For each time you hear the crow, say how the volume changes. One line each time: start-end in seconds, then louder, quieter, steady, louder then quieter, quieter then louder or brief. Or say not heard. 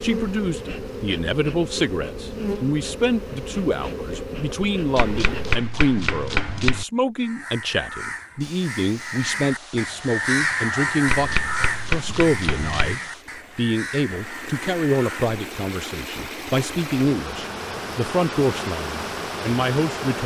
7.2-15.3 louder then quieter.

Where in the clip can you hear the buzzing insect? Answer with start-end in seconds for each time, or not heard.
0.0-5.6.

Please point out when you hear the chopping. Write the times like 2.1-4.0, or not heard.
5.0-6.8, 11.1-12.9.